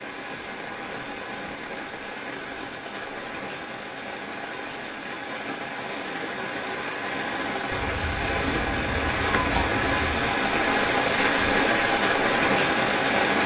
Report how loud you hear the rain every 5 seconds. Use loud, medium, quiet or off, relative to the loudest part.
quiet, medium, loud.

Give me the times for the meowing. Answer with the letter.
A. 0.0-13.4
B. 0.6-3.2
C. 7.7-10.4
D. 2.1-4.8
C.